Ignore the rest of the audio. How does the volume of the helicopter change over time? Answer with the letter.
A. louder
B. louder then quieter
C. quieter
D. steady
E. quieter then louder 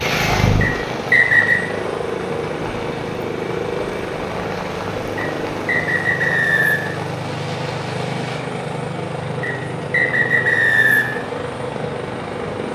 D.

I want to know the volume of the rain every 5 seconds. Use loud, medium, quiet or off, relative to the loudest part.
loud, medium, off.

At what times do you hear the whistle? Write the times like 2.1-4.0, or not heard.
0.6-1.6, 5.2-6.9, 9.4-11.1.